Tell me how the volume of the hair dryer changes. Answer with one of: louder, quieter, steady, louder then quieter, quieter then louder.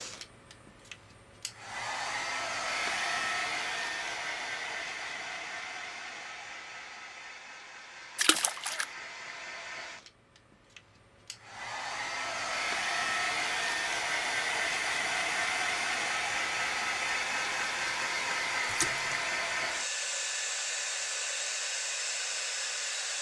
quieter then louder.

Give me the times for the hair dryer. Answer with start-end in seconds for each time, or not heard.
0.0-23.1.